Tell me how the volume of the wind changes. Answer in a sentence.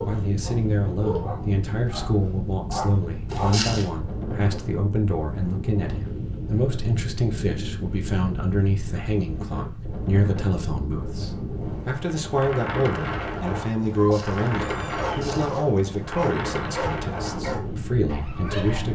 The loudness of the wind stays about the same.